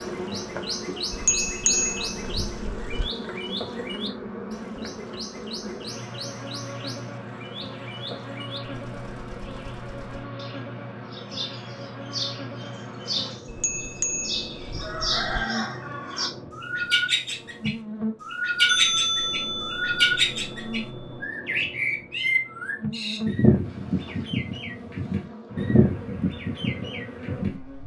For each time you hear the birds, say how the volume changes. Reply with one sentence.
You can hear the birds from 0.0 to 27.6 s, getting quieter then louder.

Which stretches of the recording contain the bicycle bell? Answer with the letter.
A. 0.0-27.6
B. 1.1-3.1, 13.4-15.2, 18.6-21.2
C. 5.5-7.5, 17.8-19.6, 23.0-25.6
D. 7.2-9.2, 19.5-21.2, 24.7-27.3
B.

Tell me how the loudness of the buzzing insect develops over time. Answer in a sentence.
The loudness of the buzzing insect stays about the same.